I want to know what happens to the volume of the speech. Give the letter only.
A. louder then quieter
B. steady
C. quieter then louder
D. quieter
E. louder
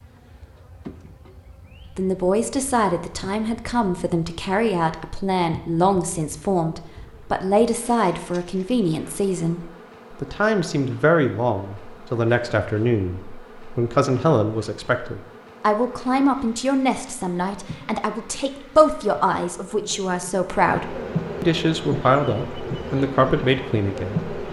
B.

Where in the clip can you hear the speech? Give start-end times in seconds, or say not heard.
1.9-24.2.